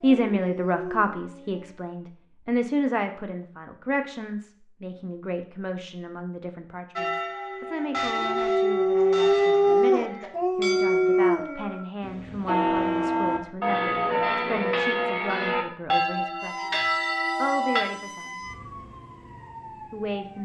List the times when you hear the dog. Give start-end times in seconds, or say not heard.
0.0-1.8, 8.1-11.8.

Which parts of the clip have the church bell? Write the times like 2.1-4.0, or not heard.
7.0-17.9.